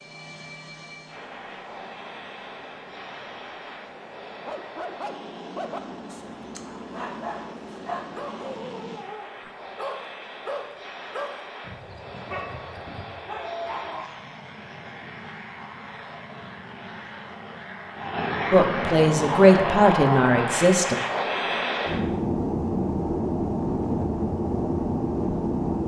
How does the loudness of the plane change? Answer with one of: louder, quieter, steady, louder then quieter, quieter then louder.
louder.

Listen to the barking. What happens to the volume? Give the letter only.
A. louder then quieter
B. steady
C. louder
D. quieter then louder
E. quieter
B.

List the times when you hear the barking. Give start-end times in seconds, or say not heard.
4.5-14.1.